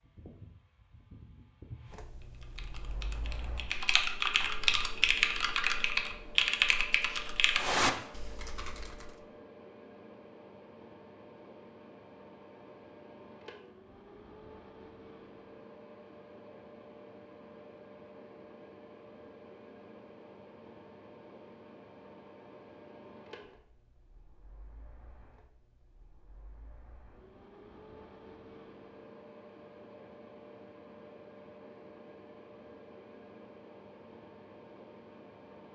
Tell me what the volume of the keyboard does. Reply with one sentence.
The loudness of the keyboard goes up.